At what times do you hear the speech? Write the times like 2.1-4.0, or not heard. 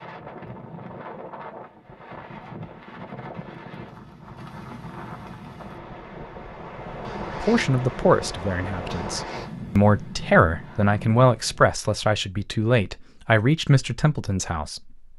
7.4-15.1.